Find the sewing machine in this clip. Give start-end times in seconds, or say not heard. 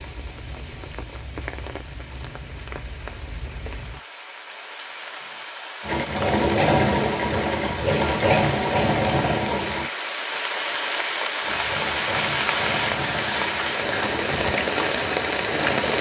5.8-9.9, 11.4-15.9.